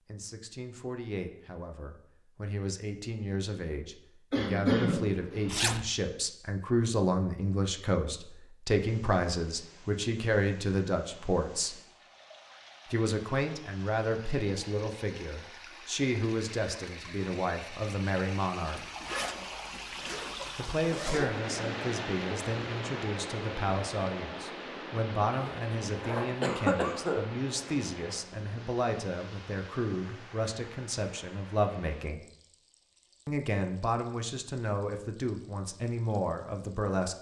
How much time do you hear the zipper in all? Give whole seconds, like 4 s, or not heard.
4 s.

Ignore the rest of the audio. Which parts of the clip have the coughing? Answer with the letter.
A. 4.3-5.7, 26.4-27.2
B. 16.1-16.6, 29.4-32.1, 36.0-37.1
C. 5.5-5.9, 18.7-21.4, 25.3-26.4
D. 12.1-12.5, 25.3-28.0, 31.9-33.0
A.